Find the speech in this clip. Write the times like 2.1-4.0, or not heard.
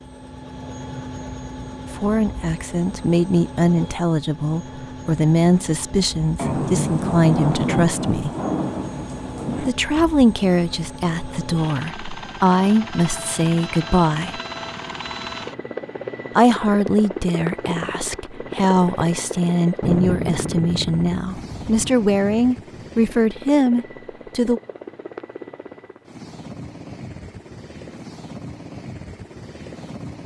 1.9-8.3, 9.6-14.4, 16.4-24.6.